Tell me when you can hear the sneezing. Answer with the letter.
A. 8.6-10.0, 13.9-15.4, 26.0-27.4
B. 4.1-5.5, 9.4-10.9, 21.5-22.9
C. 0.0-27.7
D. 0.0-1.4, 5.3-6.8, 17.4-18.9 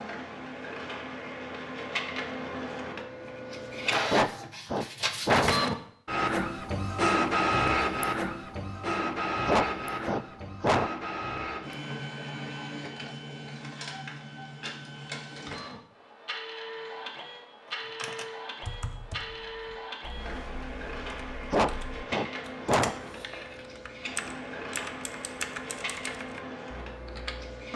B.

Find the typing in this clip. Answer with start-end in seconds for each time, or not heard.
17.6-27.6.